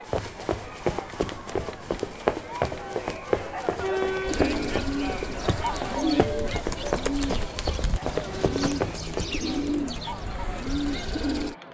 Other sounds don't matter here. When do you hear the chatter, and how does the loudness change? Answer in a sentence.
The chatter can be heard from 0.0 to 11.6 s, getting louder then quieter.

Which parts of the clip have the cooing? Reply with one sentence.
You can hear the cooing from 4.2 to 11.6 s.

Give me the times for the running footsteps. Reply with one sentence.
The running footsteps can be heard from 0.1 to 9.3 s.